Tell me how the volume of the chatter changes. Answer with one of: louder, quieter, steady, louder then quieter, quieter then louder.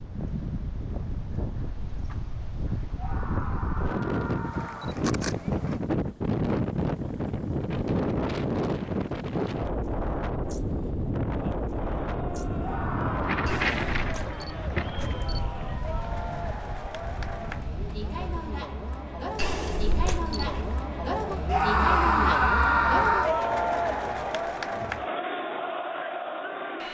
louder.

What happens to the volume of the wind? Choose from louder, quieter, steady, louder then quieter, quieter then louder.
louder then quieter.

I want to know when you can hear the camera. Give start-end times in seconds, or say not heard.
4.5-5.8, 13.4-15.7, 19.4-20.9.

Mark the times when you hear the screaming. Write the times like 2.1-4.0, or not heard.
3.0-5.0, 12.6-13.6, 21.4-23.3.